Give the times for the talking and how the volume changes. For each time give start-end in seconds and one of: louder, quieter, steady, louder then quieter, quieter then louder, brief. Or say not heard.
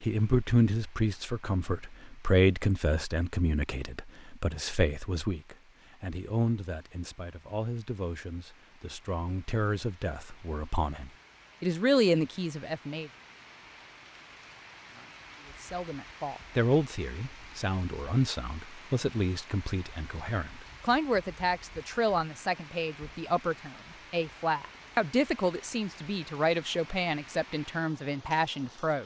0.0-13.1 quieter then louder
15.6-29.0 steady.